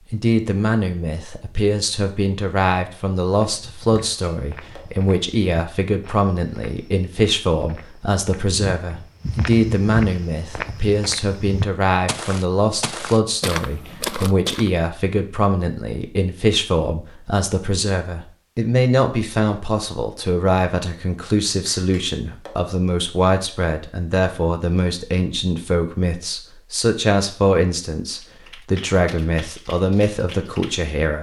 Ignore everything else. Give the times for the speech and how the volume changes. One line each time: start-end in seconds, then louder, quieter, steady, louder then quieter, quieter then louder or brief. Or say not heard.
0.1-31.1 steady.